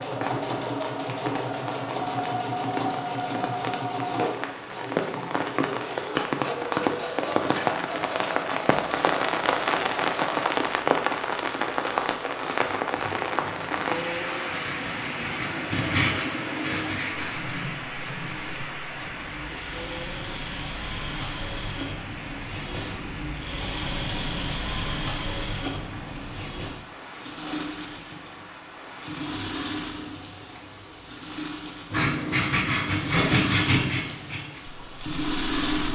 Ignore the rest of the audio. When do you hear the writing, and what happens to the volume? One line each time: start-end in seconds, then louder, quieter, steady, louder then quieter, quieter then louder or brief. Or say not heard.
12.6-18.6 louder then quieter
31.9-35.9 quieter.